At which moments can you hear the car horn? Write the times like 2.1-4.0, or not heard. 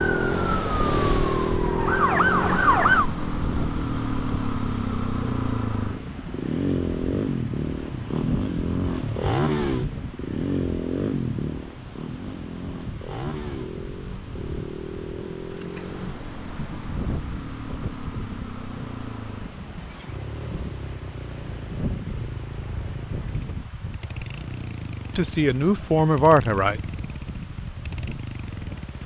not heard.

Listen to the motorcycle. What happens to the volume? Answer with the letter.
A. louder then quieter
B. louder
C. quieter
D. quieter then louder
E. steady
C.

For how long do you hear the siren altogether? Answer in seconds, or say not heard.
3 s.